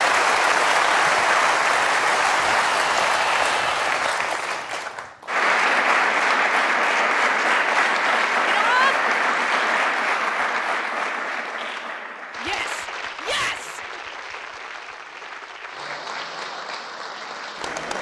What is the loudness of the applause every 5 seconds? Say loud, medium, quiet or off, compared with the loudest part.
loud, loud, medium, quiet.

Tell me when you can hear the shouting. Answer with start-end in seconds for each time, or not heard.
2.5-4.0, 8.4-8.9, 12.4-13.8.